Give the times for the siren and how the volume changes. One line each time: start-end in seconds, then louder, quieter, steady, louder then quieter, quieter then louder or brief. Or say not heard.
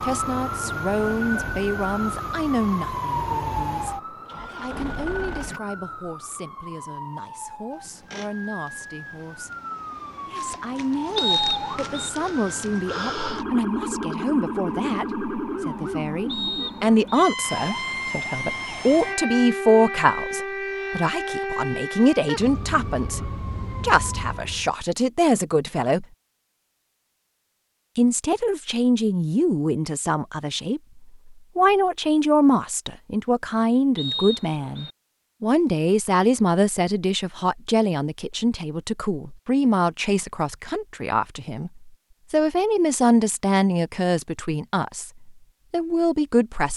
0.0-24.7 quieter then louder.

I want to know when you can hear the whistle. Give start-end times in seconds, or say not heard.
11.2-12.1, 16.2-17.2, 34.0-34.9.